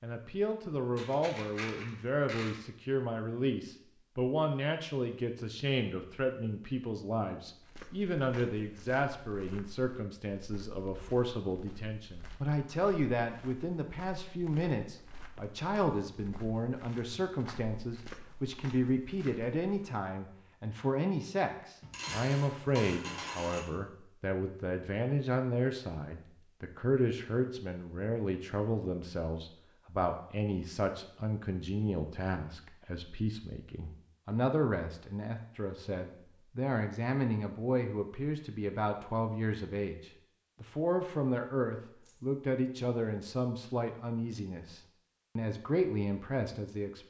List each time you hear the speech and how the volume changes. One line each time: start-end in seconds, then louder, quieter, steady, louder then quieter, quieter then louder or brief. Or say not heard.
0.0-47.0 steady.